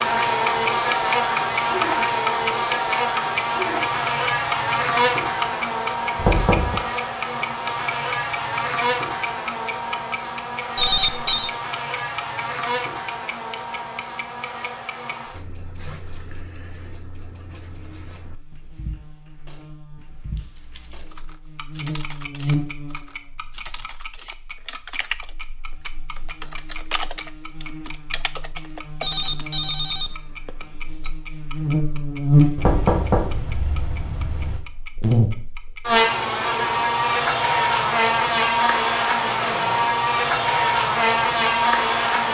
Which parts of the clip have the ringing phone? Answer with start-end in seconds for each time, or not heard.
10.8-11.5, 29.0-31.1.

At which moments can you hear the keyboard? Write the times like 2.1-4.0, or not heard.
20.4-29.6.